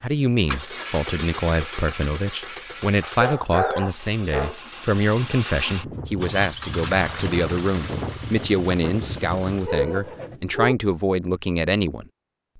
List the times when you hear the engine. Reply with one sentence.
You can hear the engine from 0.0 to 10.4 s.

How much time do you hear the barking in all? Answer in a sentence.
The barking can be heard for 3 seconds in total.